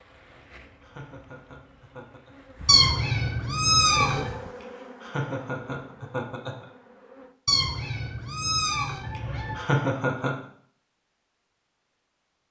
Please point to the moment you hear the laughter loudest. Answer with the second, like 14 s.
10 s.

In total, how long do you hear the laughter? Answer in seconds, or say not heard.
5 s.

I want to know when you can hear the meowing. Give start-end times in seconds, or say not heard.
2.6-4.3, 7.5-9.6.